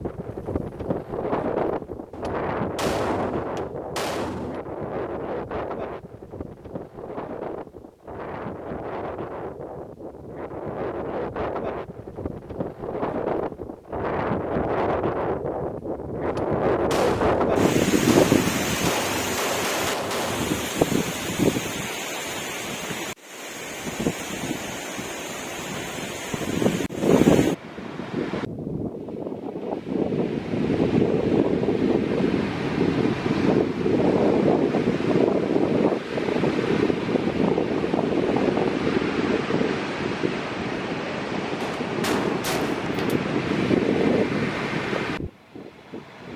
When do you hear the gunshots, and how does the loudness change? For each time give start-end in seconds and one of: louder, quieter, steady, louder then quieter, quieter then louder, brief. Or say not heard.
2.1-4.6 brief
16.2-20.7 quieter then louder
41.5-43.2 brief.